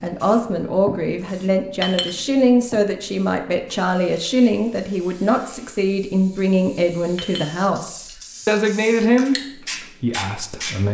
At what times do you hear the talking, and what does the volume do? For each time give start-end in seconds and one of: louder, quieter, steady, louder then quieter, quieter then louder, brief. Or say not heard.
0.0-10.8 steady.